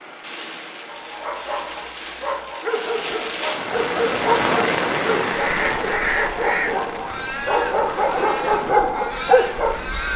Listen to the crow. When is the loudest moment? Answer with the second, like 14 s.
6 s.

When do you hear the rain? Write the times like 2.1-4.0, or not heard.
0.0-10.1.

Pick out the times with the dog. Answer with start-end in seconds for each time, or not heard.
0.8-9.8.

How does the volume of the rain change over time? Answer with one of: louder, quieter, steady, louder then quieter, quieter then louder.
louder then quieter.